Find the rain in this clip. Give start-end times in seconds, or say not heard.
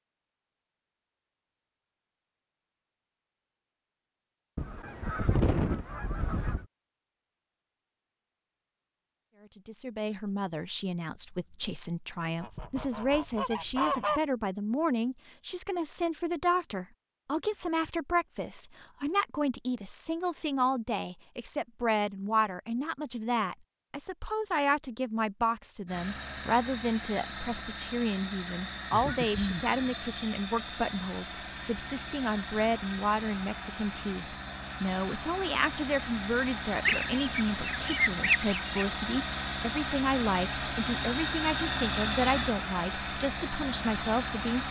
not heard.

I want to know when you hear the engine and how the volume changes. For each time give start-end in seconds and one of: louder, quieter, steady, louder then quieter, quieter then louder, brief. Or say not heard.
25.9-44.6 louder.